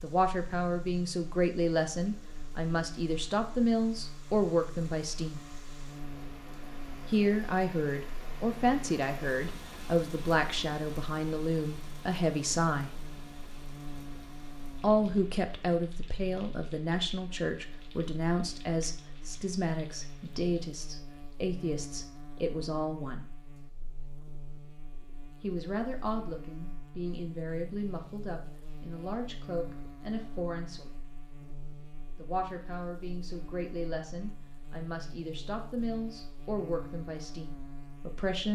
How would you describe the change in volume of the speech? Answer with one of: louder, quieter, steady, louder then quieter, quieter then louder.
quieter.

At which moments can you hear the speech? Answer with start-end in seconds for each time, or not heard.
0.0-5.4, 7.0-12.9, 14.8-23.3, 25.4-31.0, 32.1-38.4.